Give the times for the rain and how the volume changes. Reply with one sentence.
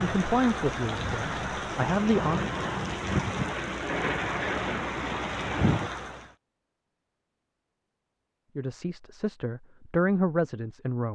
The rain can be heard from 0.0 to 6.3 s, at a steady volume.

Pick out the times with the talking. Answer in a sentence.
The talking can be heard from 0.0 to 2.5 s and from 8.6 to 11.1 s.